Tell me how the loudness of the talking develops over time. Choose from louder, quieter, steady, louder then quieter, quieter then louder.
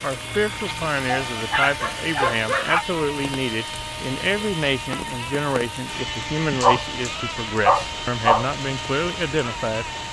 steady.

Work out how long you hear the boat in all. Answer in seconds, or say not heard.
10 s.